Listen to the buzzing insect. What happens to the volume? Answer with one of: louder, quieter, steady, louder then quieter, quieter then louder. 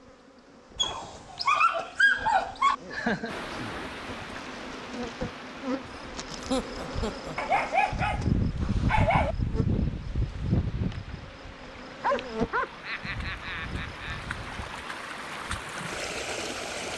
louder then quieter.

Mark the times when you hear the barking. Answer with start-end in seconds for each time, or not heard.
0.8-2.8, 7.3-9.3, 12.0-12.7.